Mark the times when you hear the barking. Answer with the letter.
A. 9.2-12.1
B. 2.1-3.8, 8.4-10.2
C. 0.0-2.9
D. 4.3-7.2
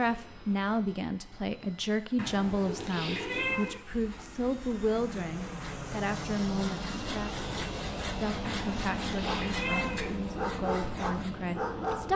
A.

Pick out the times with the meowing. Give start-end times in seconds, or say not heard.
2.1-3.8, 8.4-10.2.